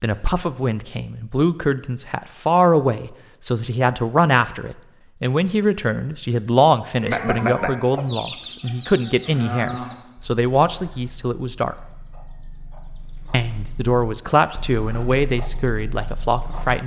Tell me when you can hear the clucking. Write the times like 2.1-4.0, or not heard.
7.0-16.8.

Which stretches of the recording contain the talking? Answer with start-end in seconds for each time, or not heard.
0.0-11.8, 13.3-16.8.